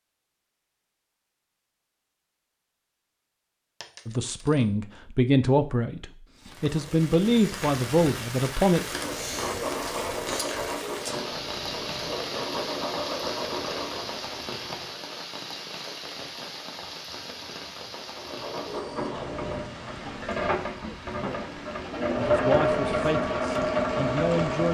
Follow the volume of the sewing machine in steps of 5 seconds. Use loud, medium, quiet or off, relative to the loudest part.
off, medium, medium, medium, loud.